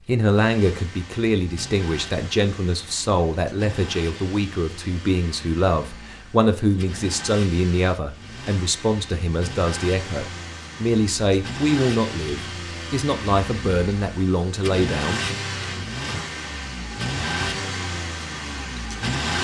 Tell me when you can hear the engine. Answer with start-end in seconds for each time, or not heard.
0.0-19.3.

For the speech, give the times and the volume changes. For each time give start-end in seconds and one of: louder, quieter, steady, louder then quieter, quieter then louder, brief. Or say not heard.
0.1-15.2 steady.